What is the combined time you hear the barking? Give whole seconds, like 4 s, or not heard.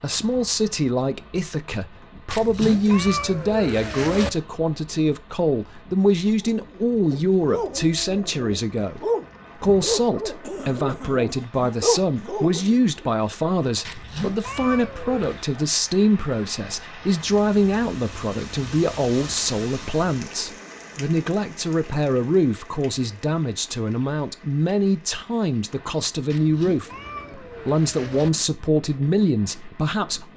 7 s.